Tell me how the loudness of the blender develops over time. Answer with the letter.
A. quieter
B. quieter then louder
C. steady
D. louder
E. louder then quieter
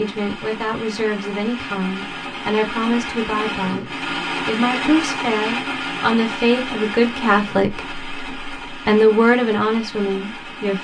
E.